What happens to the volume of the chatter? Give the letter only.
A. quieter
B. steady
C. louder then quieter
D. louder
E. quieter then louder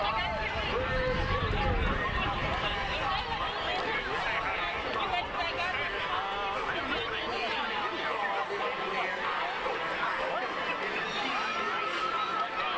B.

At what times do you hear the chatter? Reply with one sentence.
The chatter can be heard from 0.0 to 12.7 s.